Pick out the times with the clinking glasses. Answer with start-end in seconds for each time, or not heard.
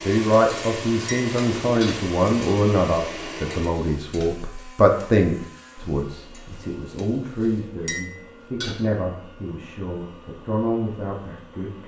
1.1-2.0, 7.8-8.8.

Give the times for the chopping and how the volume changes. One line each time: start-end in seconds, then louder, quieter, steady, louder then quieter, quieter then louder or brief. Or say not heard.
not heard.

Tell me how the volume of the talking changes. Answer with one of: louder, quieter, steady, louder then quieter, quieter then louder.
quieter.